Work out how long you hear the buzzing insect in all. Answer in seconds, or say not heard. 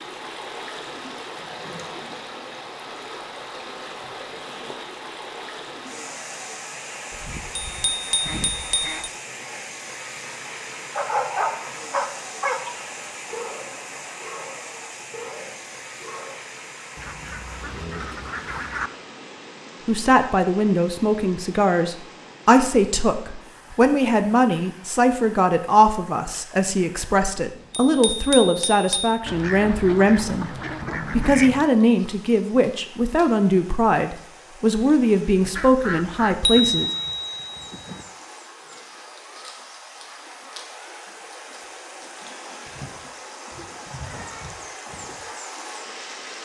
not heard.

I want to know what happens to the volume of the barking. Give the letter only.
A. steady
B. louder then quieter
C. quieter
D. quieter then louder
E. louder
C.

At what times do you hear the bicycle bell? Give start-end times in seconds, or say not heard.
7.7-8.9, 27.7-29.1, 36.5-38.0.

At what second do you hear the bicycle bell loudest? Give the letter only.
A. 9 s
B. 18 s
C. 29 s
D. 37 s
D.